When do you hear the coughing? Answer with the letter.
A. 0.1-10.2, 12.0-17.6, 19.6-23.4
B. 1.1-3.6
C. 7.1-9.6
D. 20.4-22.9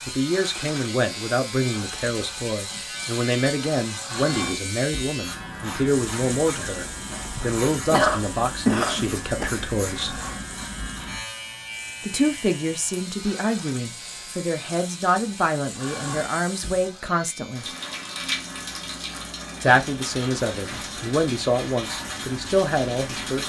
C.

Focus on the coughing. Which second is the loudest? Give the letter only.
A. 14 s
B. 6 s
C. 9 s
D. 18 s
C.